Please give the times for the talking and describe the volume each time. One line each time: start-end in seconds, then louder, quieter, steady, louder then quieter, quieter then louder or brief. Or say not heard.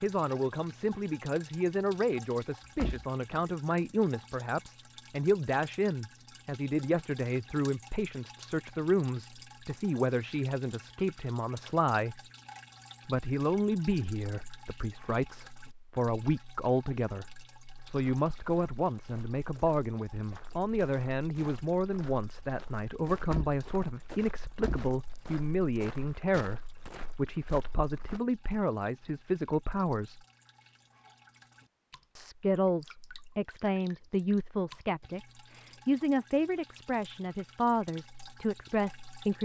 0.0-12.2 steady
13.1-30.2 steady
32.1-39.3 steady.